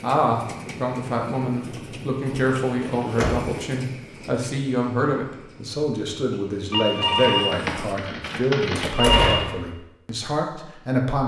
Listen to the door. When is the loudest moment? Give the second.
9 s.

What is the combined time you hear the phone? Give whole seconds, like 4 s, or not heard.
3 s.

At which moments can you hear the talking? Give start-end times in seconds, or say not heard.
0.0-11.2.